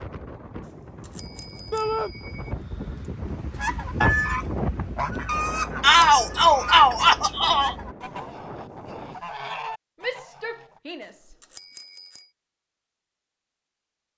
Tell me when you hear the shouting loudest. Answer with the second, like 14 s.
6 s.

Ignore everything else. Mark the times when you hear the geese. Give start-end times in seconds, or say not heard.
3.5-10.8.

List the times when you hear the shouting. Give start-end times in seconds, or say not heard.
1.7-2.1, 5.8-7.8, 10.0-11.3.